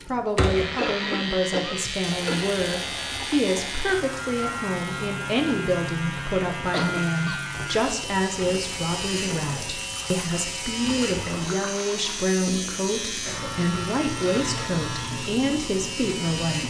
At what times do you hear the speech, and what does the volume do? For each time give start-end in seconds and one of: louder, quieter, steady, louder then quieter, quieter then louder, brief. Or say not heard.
0.1-16.6 steady.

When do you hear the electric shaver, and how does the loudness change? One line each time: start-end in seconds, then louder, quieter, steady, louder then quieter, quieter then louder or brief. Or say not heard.
0.3-16.6 steady.